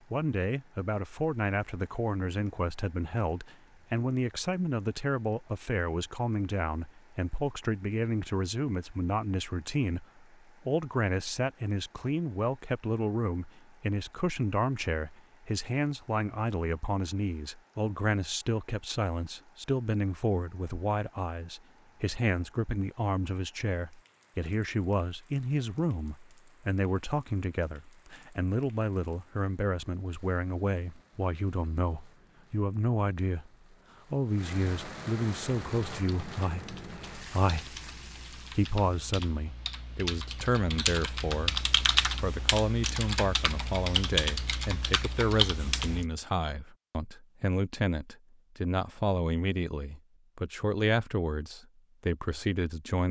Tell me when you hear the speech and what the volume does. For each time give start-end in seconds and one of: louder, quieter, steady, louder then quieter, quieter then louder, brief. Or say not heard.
0.1-33.5 steady
34.1-53.0 steady.